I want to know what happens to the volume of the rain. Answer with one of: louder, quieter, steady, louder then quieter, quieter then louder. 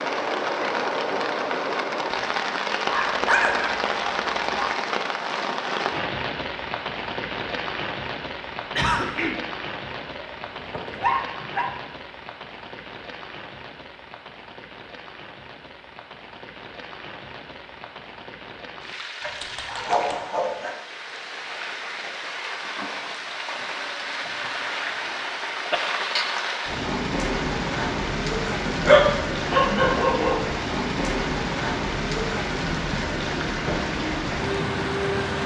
quieter then louder.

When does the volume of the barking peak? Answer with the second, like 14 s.
29 s.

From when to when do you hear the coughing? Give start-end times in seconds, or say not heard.
8.8-9.3.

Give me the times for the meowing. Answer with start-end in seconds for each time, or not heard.
not heard.